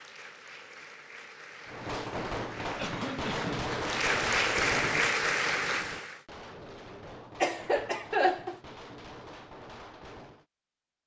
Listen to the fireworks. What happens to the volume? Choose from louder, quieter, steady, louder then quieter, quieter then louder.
quieter.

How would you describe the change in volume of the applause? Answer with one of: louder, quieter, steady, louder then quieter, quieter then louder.
louder.